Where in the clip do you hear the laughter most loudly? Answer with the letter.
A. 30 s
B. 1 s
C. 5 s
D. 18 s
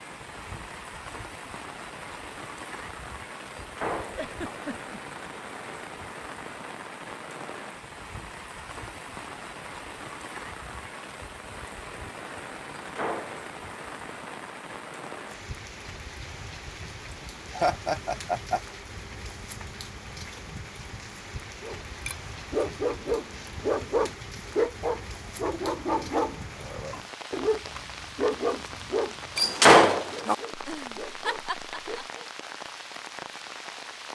D.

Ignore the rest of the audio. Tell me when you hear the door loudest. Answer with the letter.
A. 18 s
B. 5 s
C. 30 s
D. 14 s
C.